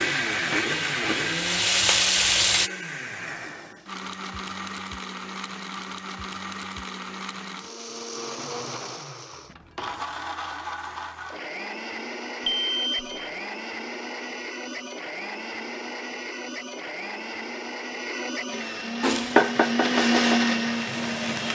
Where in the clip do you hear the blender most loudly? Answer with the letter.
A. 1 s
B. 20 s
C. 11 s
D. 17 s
B.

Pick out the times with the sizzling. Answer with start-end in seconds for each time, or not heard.
0.0-2.7, 19.0-21.4.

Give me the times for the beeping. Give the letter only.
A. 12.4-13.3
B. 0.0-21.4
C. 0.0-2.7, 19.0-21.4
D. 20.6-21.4
A.